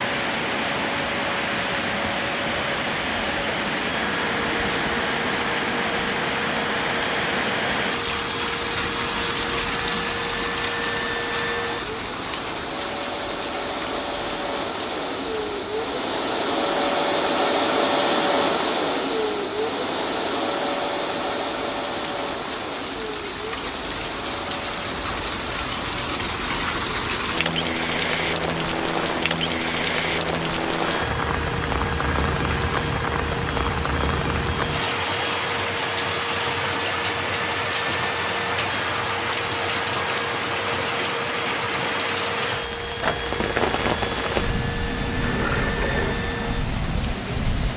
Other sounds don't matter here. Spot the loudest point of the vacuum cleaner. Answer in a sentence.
The volume of the vacuum cleaner peaks at 18 seconds.